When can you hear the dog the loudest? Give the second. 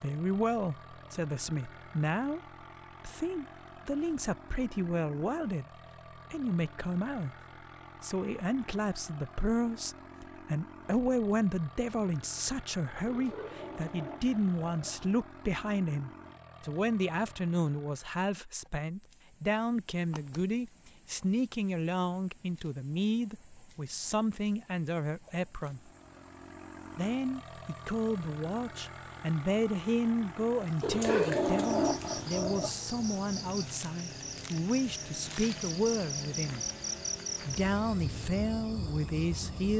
31 s.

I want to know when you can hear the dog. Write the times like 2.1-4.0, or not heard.
13.1-15.1, 30.8-32.7.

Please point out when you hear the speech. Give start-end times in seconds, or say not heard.
0.0-2.4, 3.0-5.7, 6.3-7.3, 8.0-25.9, 26.9-36.6, 37.5-39.7.